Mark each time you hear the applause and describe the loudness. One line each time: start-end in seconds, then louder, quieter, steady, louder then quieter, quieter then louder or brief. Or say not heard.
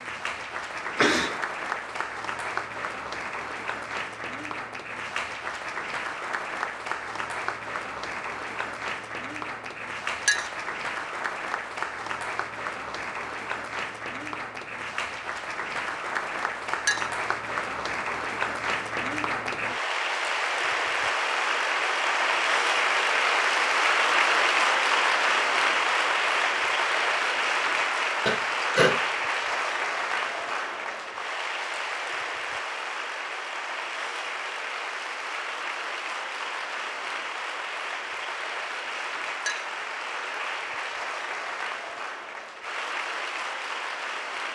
0.0-44.5 louder then quieter.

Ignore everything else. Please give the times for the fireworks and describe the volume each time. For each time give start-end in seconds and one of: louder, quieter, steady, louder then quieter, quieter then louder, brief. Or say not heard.
not heard.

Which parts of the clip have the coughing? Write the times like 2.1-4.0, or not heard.
0.9-1.4, 28.2-28.9.